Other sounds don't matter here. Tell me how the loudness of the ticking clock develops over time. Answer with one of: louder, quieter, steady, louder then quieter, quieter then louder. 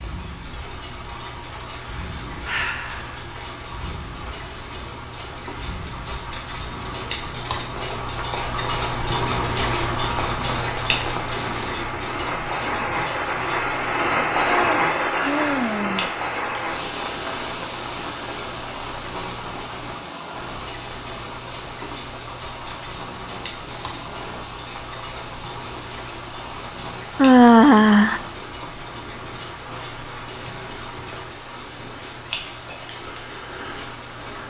louder then quieter.